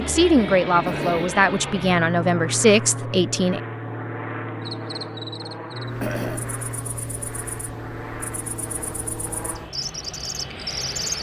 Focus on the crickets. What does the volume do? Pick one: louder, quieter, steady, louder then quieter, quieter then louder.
quieter then louder.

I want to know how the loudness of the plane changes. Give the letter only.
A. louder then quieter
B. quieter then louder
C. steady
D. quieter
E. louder
D.